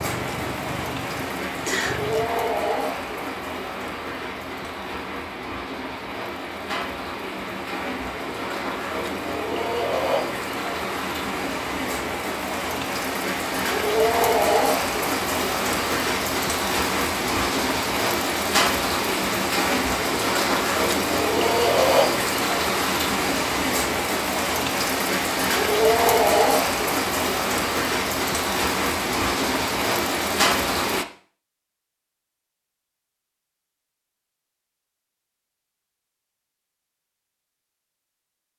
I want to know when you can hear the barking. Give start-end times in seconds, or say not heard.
not heard.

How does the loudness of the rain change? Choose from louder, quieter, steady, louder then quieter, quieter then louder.
louder.